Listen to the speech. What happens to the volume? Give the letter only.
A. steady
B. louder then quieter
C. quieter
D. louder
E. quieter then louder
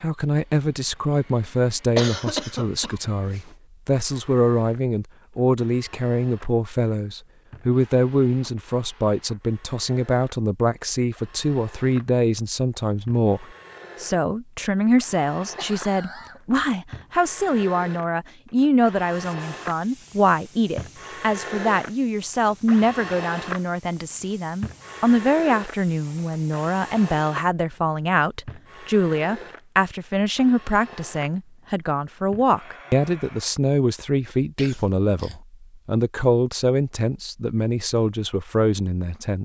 A.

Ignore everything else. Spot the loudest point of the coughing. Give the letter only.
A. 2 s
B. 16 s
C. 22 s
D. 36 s
A.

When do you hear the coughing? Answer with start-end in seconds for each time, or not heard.
1.9-3.5, 15.1-16.4, 34.5-35.4.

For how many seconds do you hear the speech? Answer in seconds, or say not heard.
39 s.